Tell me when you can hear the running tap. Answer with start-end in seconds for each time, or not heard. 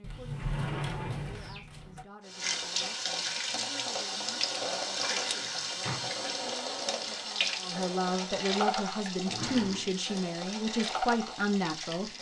2.2-12.1.